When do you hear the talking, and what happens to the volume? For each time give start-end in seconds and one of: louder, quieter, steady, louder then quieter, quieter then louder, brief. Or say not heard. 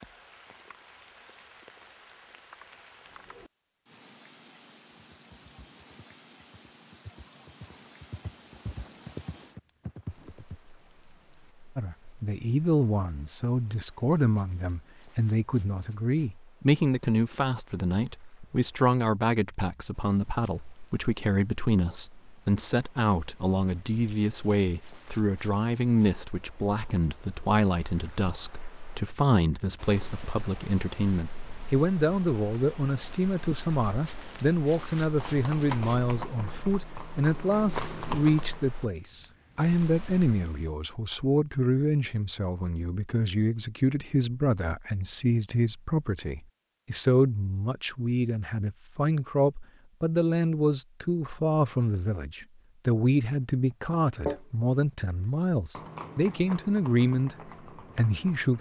11.8-58.5 steady.